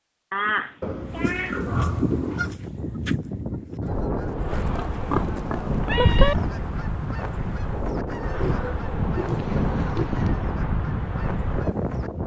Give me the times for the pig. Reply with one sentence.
You can hear the pig from 0.8 to 2.5 s, from 4.8 to 6.5 s and from 8.2 to 10.2 s.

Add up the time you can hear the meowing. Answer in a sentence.
The meowing can be heard for 3 seconds in total.